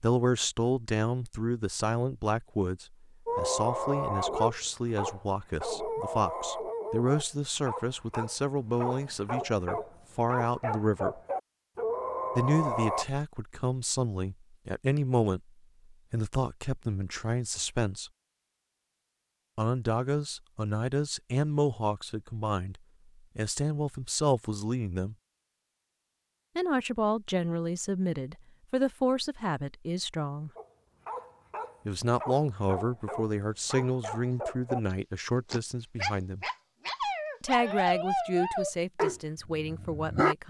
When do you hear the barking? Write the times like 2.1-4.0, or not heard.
3.2-13.1, 30.6-40.4.